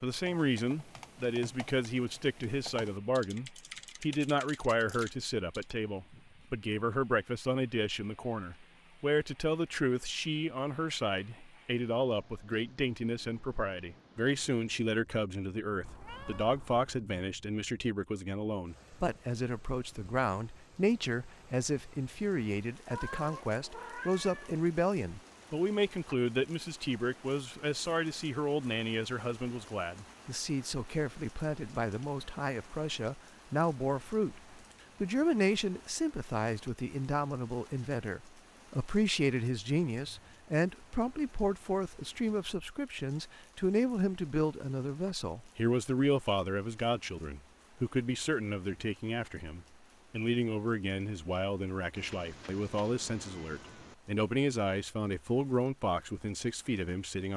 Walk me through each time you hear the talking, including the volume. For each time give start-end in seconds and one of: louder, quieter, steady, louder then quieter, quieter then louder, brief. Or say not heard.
0.0-57.3 steady.